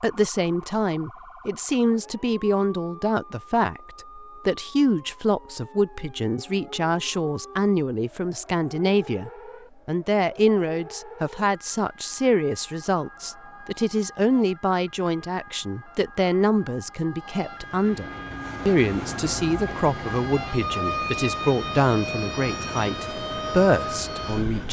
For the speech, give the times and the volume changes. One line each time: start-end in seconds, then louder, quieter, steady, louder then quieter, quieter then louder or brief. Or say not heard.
0.0-24.6 steady.